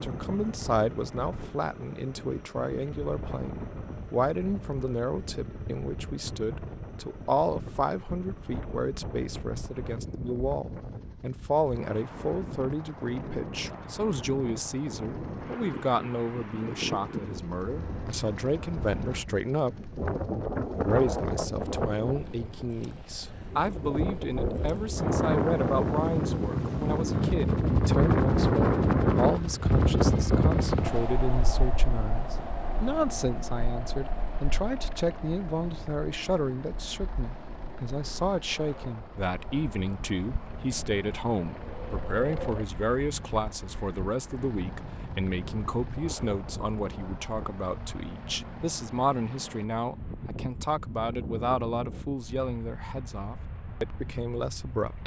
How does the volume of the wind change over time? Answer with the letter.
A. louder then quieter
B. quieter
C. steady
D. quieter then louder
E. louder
A.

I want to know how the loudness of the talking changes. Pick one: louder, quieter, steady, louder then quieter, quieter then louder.
steady.